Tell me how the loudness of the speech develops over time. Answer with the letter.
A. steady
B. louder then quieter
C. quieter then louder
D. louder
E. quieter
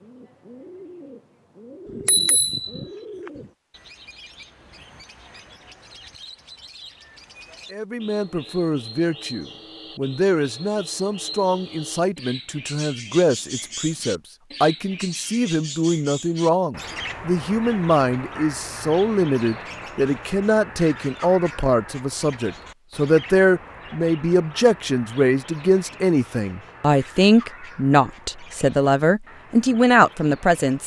D.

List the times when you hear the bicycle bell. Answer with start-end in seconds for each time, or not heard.
1.9-3.5.